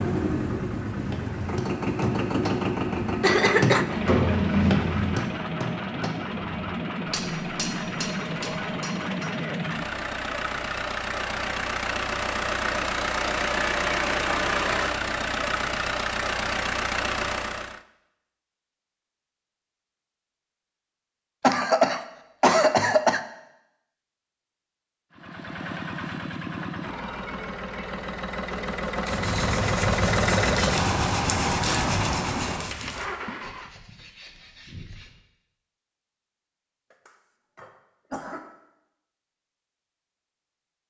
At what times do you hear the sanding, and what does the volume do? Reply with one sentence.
The sanding can be heard from 29.1 to 35.1 s, getting quieter.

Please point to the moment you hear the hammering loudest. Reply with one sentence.
The volume of the hammering peaks at 5 seconds.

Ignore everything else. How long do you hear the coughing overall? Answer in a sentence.
The coughing can be heard for 4 seconds in total.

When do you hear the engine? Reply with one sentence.
The engine can be heard from 0.0 to 17.8 s and from 25.1 to 33.8 s.